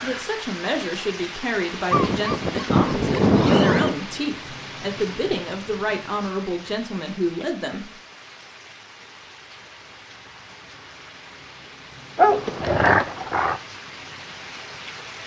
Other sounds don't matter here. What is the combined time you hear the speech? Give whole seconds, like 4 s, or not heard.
8 s.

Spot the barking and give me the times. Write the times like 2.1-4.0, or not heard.
1.9-3.9, 12.2-13.6.